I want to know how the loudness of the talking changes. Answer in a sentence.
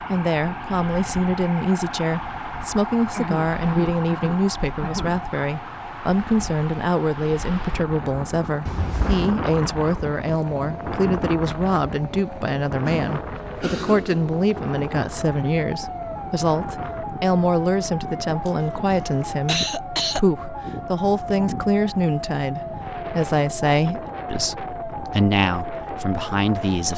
The volume of the talking stays about the same.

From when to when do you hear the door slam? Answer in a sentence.
You can hear the door slam from 8.7 to 9.2 s.